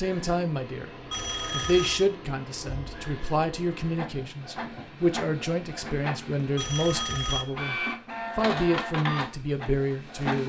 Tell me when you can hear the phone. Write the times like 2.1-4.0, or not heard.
1.1-2.1, 6.5-7.5.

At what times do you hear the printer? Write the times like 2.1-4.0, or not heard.
0.0-10.4.